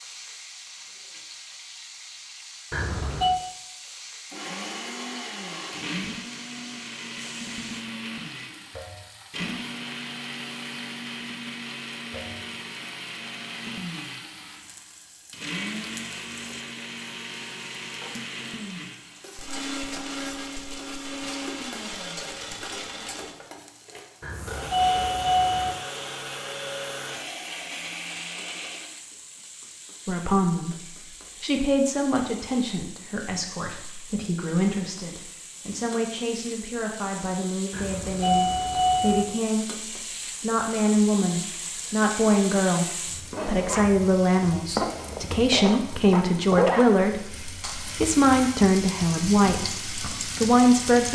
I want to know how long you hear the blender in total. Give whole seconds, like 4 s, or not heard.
25 s.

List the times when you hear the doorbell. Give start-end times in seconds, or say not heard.
2.7-3.4, 24.2-25.8, 37.7-39.2.